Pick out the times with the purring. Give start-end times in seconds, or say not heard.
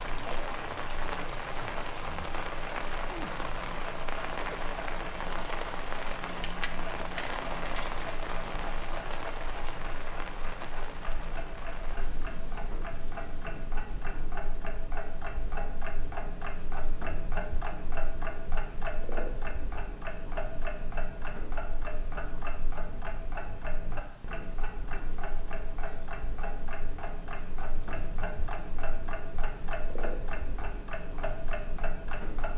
not heard.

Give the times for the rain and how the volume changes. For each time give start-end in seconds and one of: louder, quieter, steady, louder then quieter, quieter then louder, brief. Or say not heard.
0.0-32.5 quieter.